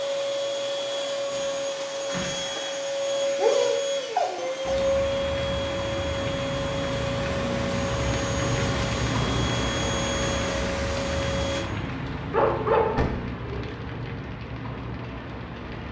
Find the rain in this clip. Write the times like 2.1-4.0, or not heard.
4.6-15.8.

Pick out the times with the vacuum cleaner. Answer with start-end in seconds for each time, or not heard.
0.0-11.7.